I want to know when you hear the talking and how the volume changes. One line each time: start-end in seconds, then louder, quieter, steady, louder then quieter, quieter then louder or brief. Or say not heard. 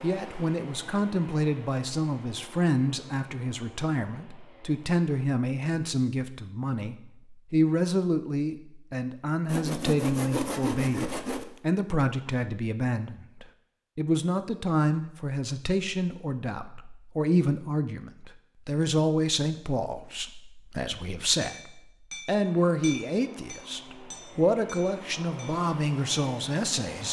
0.0-27.0 steady.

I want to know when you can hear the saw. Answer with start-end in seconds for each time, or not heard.
9.4-11.4.